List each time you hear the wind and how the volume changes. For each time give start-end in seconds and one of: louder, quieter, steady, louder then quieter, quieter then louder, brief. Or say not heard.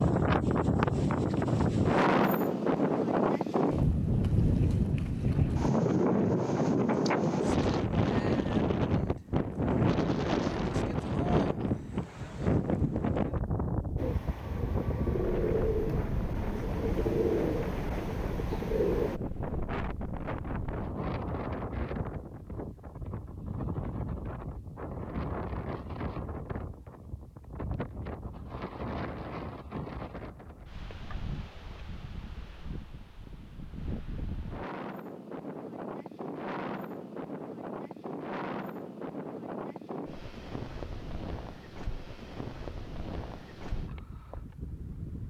0.0-45.2 quieter.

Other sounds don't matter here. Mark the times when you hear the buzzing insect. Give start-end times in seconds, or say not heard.
not heard.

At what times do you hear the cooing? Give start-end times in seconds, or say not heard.
13.9-19.2.